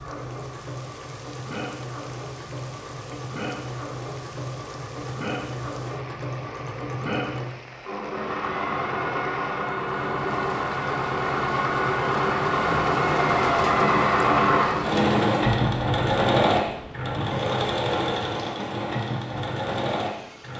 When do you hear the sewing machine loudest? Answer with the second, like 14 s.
14 s.